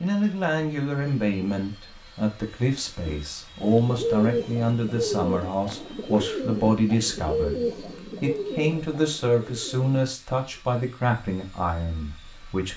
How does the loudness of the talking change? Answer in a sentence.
The loudness of the talking stays about the same.